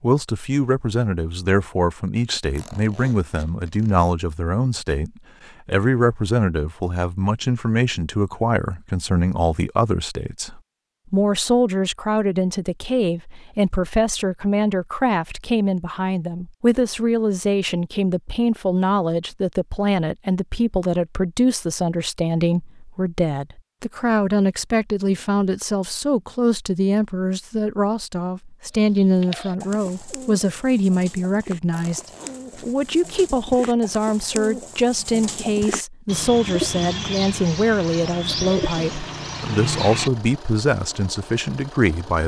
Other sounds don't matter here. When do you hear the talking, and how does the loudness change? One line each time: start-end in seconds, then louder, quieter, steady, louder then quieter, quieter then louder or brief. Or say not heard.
0.0-42.2 steady.